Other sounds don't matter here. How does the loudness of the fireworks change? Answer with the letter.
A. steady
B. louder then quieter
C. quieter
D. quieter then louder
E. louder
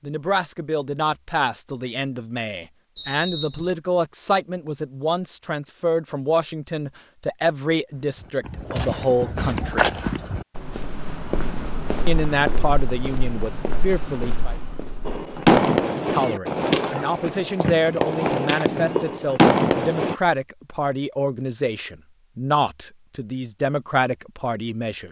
D.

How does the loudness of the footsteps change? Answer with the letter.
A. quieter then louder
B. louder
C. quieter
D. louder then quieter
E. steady
C.